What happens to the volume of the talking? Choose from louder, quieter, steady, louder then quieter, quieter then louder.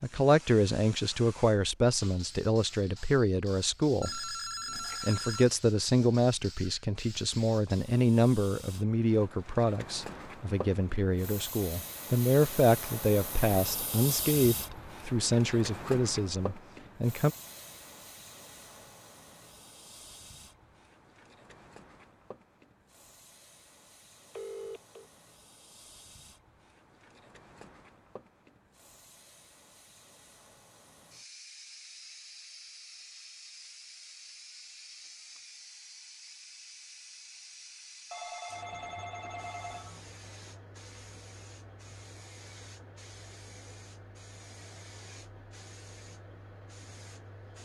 steady.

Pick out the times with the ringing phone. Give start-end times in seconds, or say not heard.
4.0-5.5, 24.4-25.1, 38.1-40.0.